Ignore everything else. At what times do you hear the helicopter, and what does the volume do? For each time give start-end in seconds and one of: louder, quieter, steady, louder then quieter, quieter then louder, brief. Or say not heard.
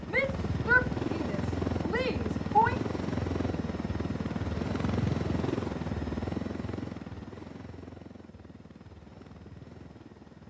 0.0-10.4 quieter.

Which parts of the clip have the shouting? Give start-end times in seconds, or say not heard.
0.1-2.8.